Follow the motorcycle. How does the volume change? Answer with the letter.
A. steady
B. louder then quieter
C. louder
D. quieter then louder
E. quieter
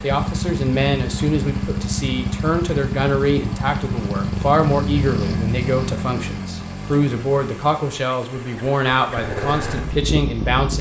D.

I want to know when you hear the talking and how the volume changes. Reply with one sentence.
The talking can be heard from 0.0 to 10.7 s, at a steady volume.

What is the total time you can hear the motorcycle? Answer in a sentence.
The motorcycle can be heard for 11 seconds in total.